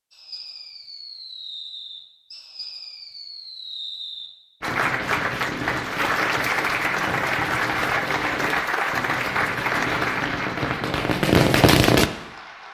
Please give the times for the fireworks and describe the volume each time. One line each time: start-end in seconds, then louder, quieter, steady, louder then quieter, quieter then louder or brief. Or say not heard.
0.1-12.1 louder.